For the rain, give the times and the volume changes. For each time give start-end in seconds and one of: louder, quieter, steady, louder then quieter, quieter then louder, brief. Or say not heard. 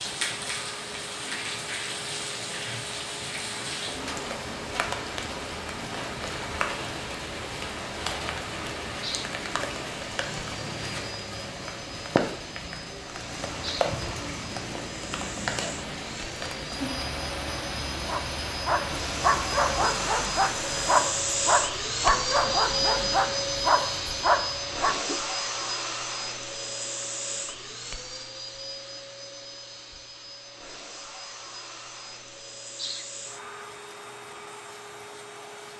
0.0-21.1 steady.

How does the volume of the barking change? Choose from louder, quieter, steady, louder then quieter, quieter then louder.
steady.